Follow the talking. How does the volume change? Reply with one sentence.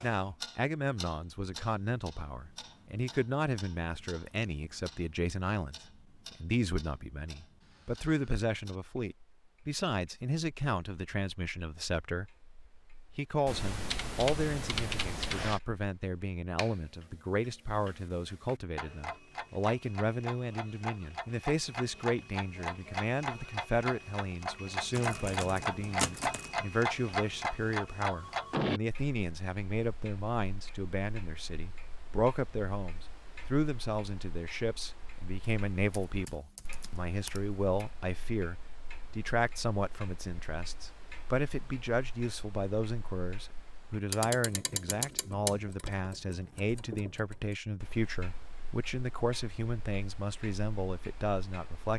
The loudness of the talking stays about the same.